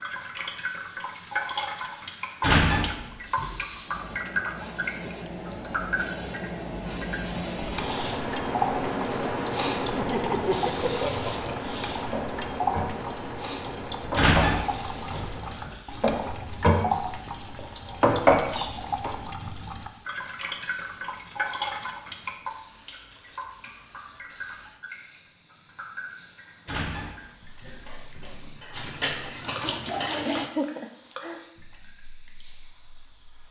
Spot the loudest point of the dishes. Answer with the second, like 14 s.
18 s.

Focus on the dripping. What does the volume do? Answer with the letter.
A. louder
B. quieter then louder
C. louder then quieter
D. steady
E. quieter
E.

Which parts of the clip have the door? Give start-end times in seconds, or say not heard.
2.4-3.6, 14.2-15.7, 26.6-28.5.